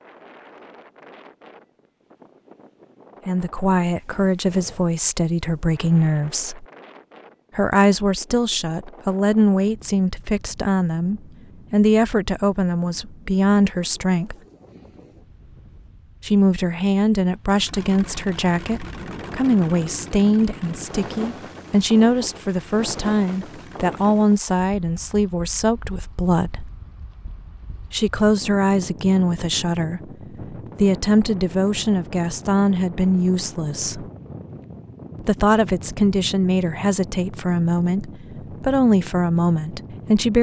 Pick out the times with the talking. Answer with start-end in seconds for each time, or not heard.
3.2-6.7, 7.5-14.3, 16.2-26.7, 27.9-34.0, 35.2-40.3.